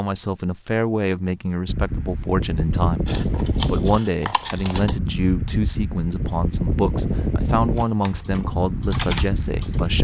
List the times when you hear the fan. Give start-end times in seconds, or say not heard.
1.6-9.9.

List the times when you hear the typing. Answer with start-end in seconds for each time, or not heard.
7.7-9.8.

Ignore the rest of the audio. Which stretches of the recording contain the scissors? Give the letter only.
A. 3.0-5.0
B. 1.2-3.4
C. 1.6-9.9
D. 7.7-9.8
A.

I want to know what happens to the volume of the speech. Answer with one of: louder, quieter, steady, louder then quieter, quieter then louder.
steady.